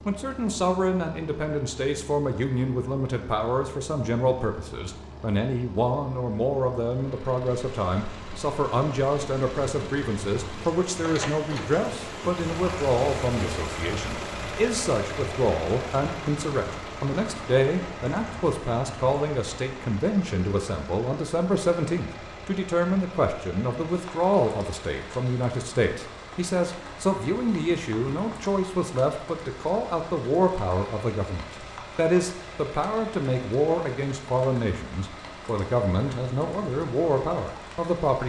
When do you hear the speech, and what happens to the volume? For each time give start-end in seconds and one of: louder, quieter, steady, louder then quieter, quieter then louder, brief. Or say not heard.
0.1-38.2 steady.